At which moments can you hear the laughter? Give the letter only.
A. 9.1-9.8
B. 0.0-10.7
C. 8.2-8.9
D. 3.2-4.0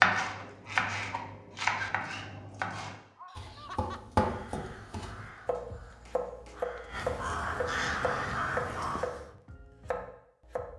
D.